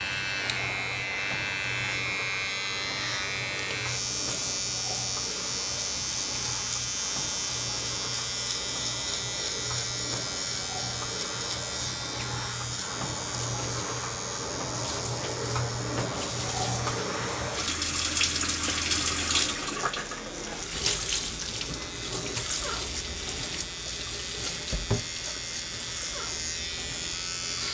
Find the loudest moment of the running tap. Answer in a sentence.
The loudest moment of the running tap is at 19 seconds.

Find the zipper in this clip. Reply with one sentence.
The zipper can't be heard in this clip.